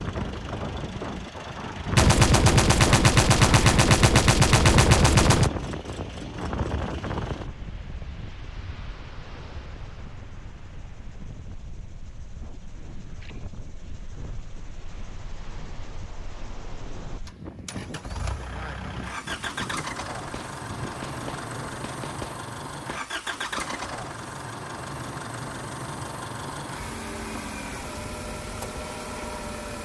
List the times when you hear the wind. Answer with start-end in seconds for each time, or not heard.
0.0-21.8.